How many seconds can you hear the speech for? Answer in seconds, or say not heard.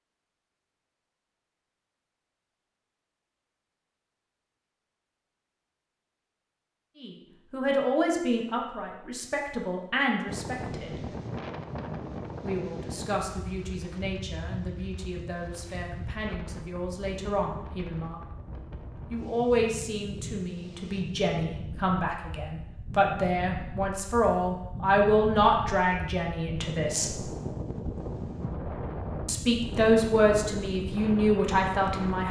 21 s.